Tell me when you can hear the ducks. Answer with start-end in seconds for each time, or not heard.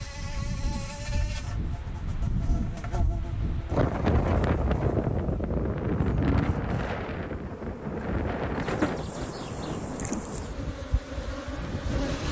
not heard.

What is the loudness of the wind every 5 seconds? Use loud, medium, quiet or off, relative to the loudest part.
loud, loud, medium.